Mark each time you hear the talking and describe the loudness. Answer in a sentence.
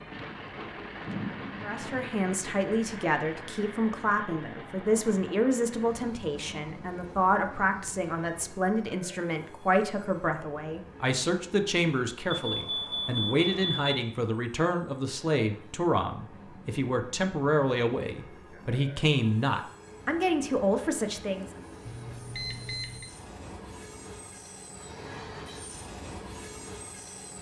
The talking can be heard from 1.6 to 21.5 s, at a steady volume.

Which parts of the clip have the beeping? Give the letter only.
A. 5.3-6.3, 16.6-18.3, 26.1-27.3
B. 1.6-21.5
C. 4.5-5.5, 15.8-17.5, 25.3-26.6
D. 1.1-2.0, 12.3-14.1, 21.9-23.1
D.